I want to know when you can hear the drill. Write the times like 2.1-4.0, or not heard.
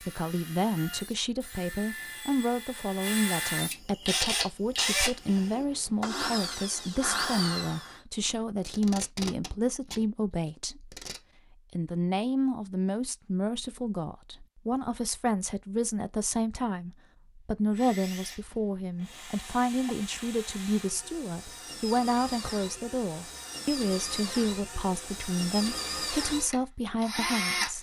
0.0-8.0, 17.7-27.7.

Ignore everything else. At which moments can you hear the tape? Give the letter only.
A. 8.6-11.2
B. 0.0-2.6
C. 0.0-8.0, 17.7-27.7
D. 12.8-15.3
A.